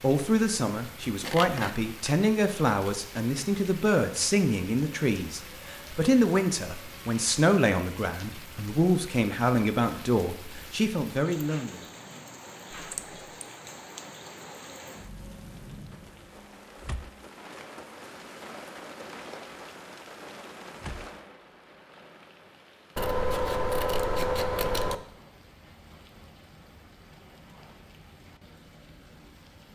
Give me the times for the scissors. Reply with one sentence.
The scissors can be heard from 1.2 to 2.1 s, from 12.7 to 13.4 s and from 22.9 to 24.9 s.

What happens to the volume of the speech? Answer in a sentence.
The loudness of the speech stays about the same.